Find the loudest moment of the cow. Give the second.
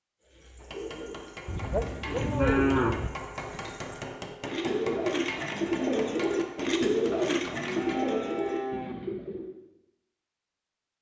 3 s.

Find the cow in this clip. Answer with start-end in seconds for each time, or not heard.
1.4-3.1, 7.0-8.9.